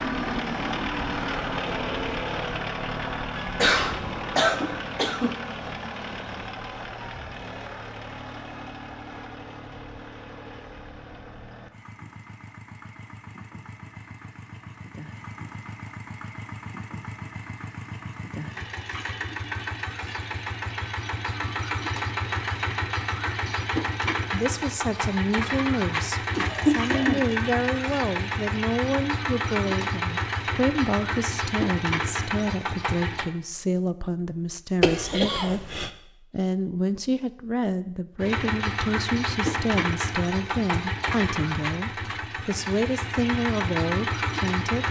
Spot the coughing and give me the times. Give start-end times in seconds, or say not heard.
3.6-5.4, 26.4-27.2, 34.8-35.9.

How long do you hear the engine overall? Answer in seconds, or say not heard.
40 s.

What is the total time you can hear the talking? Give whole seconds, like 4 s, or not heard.
20 s.